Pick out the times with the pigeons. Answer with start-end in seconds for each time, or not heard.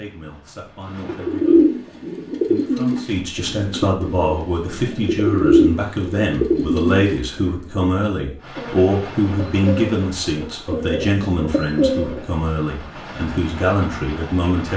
0.8-12.2.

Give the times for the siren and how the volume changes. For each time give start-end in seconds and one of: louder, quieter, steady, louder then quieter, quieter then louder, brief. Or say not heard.
not heard.